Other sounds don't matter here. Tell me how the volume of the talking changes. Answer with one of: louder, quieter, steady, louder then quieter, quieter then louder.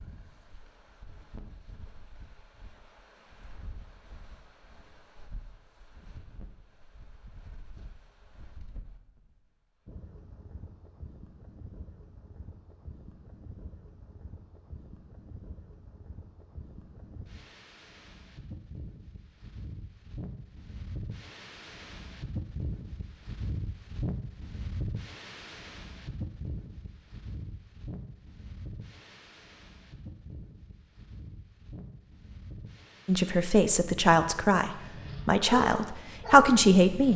louder.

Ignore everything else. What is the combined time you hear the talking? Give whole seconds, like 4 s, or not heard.
4 s.